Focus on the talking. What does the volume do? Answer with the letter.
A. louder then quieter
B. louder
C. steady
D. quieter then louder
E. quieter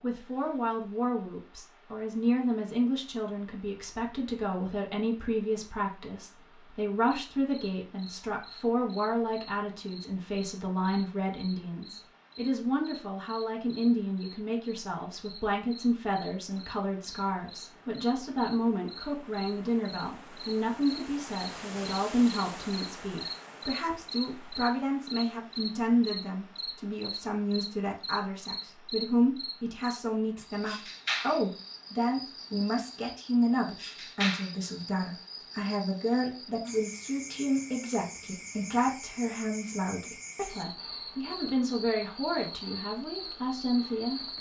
C.